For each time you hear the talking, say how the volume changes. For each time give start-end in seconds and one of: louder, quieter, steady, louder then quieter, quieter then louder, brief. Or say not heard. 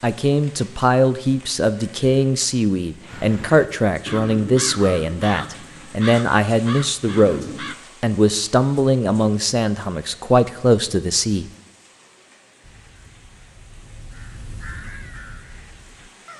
0.0-11.4 steady.